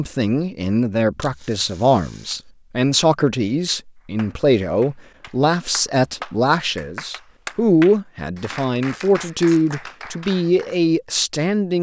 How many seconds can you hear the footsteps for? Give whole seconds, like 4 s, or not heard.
not heard.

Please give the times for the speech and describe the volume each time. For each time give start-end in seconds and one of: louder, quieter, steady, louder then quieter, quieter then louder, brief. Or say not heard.
0.0-11.7 steady.